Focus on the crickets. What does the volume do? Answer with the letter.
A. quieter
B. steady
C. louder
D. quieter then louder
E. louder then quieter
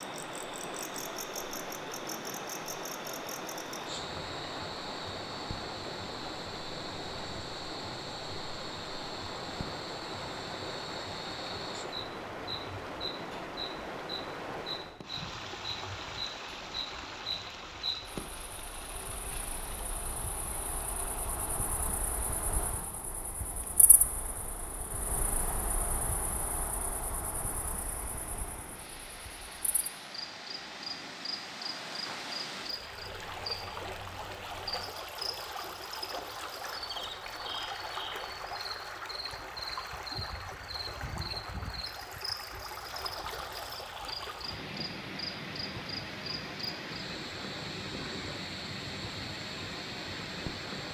B.